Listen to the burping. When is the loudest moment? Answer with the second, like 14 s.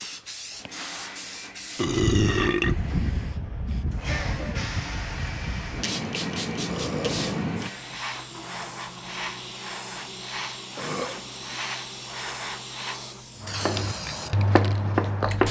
2 s.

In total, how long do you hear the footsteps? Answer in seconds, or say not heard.
not heard.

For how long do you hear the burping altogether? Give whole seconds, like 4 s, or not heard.
3 s.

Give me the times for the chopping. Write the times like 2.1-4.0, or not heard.
13.4-15.4.